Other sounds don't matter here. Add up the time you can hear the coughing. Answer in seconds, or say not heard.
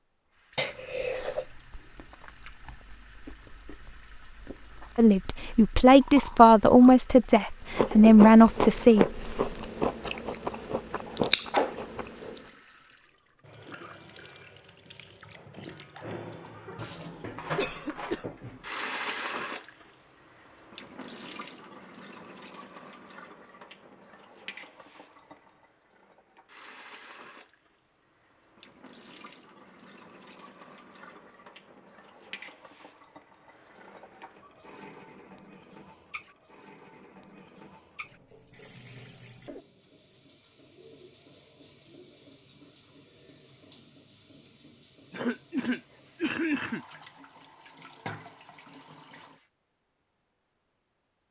3 s.